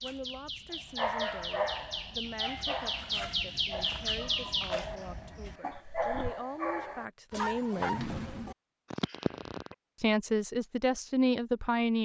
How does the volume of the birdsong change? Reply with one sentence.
The loudness of the birdsong goes up, then down.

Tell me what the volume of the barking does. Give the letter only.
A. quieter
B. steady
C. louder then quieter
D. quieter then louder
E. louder
D.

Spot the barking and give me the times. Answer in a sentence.
The barking can be heard from 0.9 to 9.8 s.